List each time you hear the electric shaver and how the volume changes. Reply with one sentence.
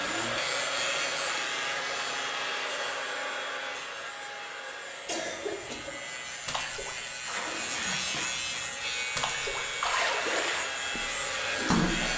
The electric shaver can be heard from 0.0 to 12.1 s, getting quieter then louder.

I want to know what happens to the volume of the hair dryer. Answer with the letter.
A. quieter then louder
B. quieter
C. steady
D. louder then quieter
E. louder
A.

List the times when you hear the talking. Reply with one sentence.
You can't hear the talking here.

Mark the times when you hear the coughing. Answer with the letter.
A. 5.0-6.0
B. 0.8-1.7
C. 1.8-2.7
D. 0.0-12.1
A.